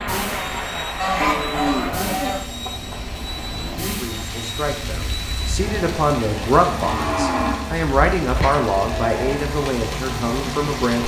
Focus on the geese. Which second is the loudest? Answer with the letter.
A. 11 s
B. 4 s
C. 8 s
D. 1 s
D.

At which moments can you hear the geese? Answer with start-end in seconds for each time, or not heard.
0.9-2.4.